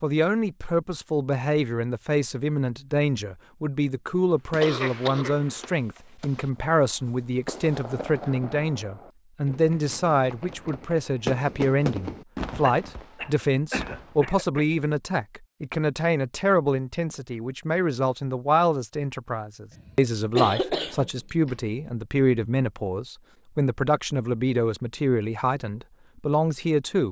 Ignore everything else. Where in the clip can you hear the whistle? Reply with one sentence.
You can't hear the whistle here.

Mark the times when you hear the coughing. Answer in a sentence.
The coughing can be heard from 4.6 to 6.4 s, from 12.6 to 14.7 s and from 19.7 to 21.6 s.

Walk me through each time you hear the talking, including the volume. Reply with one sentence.
The talking can be heard from 0.0 to 27.0 s, at a steady volume.